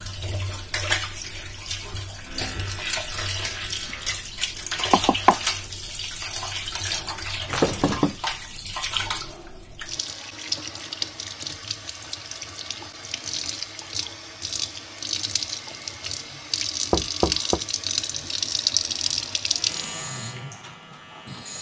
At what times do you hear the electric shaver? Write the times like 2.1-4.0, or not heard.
2.2-4.2, 19.5-21.5.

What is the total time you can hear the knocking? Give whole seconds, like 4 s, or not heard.
2 s.